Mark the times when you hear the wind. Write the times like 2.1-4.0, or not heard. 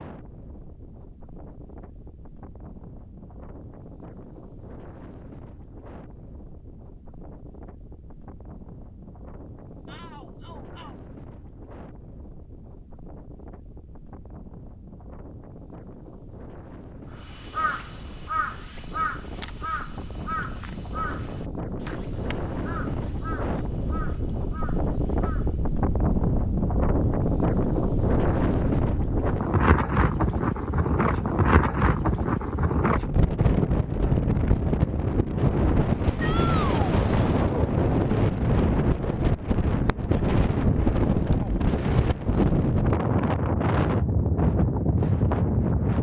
0.0-45.9.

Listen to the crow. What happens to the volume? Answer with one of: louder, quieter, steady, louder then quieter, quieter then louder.
quieter.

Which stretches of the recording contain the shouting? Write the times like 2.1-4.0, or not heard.
9.8-10.9, 36.2-36.9.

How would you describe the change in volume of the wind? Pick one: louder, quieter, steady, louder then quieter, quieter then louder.
louder.